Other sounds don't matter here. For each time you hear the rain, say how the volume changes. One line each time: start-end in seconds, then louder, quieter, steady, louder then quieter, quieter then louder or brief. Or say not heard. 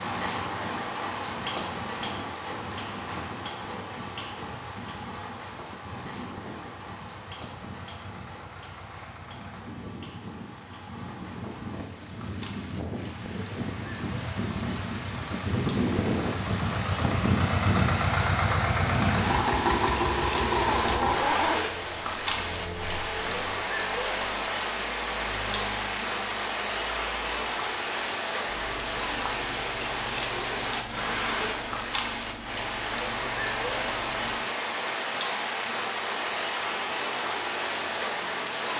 0.0-38.7 quieter then louder.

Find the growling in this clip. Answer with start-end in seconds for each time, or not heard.
20.6-21.6.